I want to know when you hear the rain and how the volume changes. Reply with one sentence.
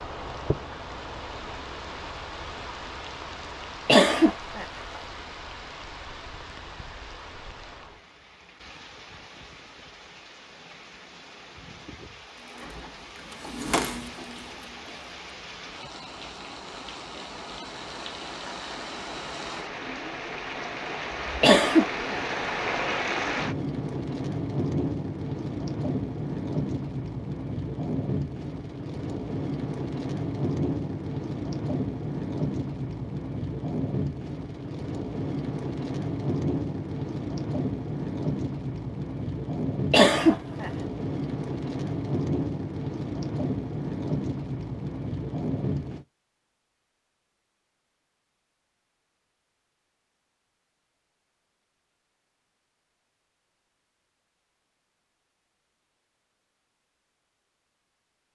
You can hear the rain from 0.0 to 46.0 s, getting louder.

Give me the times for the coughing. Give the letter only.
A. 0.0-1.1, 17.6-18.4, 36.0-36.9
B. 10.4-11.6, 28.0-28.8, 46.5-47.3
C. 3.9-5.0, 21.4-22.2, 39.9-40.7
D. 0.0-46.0
C.